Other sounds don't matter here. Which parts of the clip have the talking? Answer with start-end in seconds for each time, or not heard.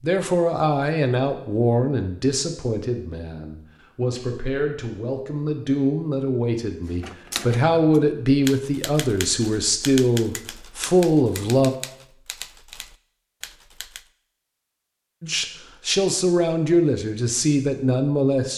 0.0-11.7, 15.2-18.5.